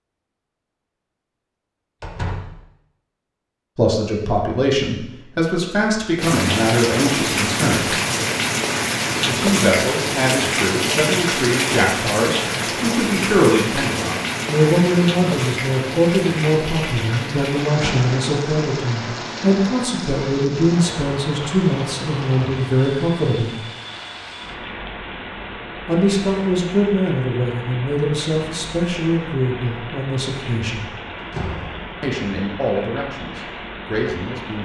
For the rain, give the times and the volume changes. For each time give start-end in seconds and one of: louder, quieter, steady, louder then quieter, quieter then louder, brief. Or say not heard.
6.2-34.6 quieter.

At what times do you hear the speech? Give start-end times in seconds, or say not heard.
3.8-8.0, 9.2-23.6, 25.9-30.9, 32.0-34.6.